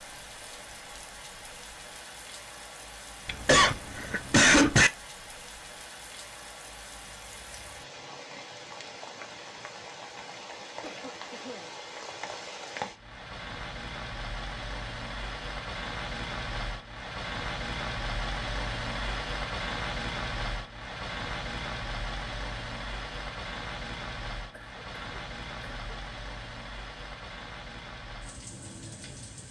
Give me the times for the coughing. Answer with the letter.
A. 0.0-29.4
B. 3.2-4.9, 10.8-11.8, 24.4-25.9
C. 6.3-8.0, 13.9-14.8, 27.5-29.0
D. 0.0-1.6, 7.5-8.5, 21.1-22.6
B.